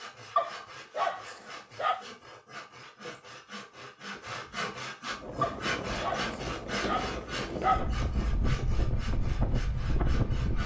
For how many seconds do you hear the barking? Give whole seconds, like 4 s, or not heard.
4 s.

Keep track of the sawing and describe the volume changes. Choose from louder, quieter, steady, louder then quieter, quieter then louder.
louder then quieter.